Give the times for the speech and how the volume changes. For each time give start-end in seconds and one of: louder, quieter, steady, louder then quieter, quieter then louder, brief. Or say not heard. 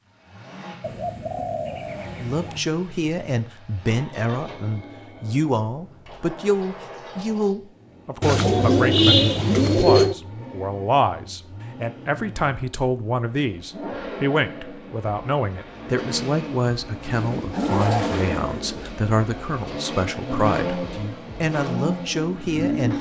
2.1-22.9 steady.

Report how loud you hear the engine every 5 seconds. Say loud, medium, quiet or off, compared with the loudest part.
quiet, quiet, medium, loud, loud.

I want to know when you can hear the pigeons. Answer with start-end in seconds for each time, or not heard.
0.8-2.6, 8.2-10.2, 17.1-18.9.